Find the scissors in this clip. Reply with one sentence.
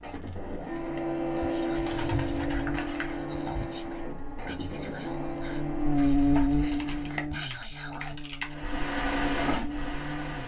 The scissors can be heard from 2.4 to 3.2 s and from 6.8 to 7.3 s.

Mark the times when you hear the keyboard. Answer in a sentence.
The keyboard can be heard from 1.7 to 2.9 s and from 6.7 to 8.6 s.